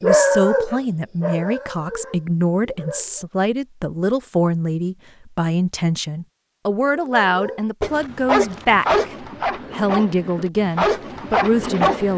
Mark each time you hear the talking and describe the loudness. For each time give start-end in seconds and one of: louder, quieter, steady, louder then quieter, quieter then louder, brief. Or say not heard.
0.0-12.1 steady.